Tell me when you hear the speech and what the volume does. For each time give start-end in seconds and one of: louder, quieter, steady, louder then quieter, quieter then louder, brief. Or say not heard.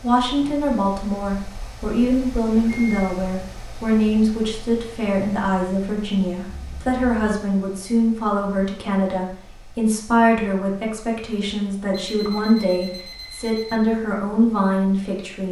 0.0-15.4 steady.